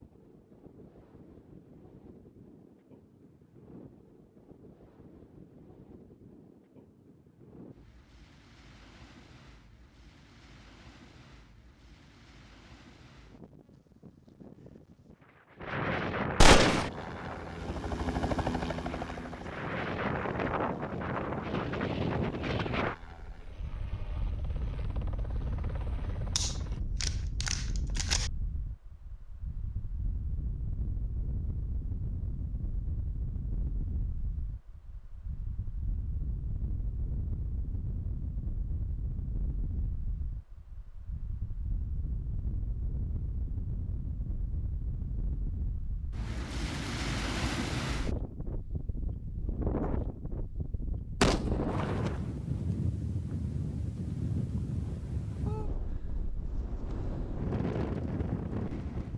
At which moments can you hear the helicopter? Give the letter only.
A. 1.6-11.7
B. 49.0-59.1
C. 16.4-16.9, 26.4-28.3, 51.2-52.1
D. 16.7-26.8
D.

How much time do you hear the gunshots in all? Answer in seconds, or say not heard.
3 s.